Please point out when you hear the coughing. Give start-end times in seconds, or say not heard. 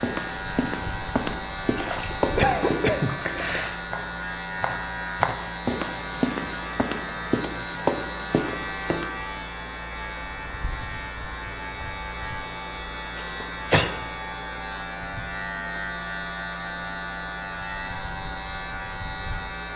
2.4-3.1, 13.2-13.9.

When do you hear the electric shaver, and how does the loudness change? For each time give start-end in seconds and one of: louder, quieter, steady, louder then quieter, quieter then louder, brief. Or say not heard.
0.0-19.7 steady.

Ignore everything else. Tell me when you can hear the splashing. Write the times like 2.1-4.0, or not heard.
1.8-3.8.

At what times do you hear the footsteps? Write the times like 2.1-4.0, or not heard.
0.0-9.1.